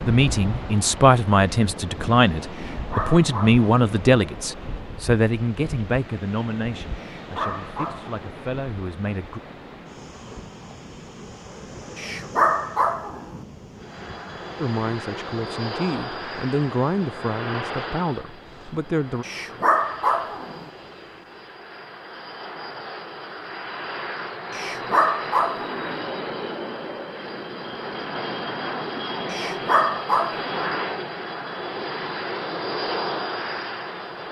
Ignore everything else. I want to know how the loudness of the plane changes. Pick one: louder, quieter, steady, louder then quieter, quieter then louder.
quieter then louder.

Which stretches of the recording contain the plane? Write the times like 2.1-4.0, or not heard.
13.8-34.2.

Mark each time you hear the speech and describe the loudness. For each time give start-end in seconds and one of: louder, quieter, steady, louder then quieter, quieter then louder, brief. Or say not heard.
0.1-9.4 quieter
14.6-19.2 louder then quieter.